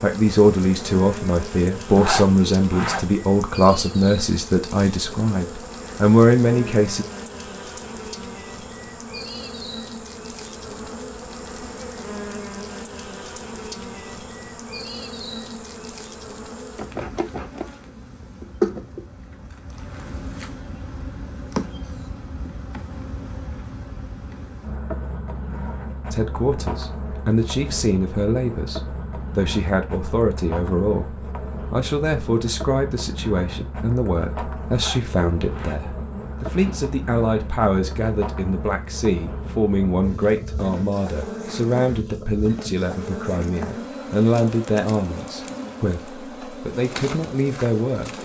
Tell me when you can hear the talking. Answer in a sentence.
You can hear the talking from 0.0 to 7.0 s and from 26.1 to 48.1 s.